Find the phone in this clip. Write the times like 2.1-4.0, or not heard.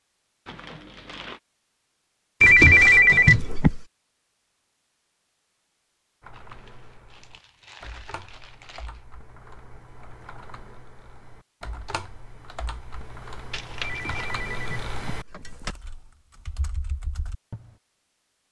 2.4-3.9, 13.8-15.8.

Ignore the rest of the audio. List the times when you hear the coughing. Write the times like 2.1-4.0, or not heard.
not heard.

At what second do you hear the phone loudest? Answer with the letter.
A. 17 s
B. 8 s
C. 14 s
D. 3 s
D.